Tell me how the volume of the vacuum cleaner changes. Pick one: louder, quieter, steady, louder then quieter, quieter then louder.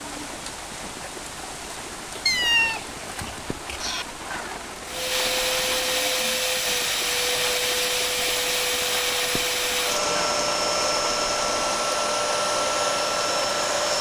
steady.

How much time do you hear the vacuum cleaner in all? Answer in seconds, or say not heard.
9 s.